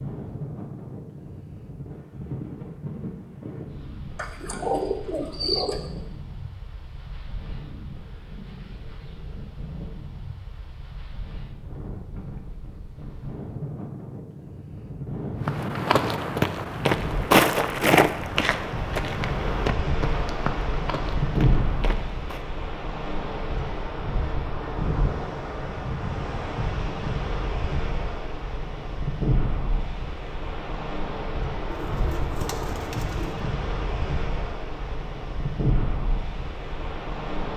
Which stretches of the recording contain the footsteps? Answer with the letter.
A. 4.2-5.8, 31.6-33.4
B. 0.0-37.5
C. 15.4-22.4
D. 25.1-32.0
C.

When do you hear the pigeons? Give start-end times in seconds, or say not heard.
4.2-5.8, 31.6-33.4.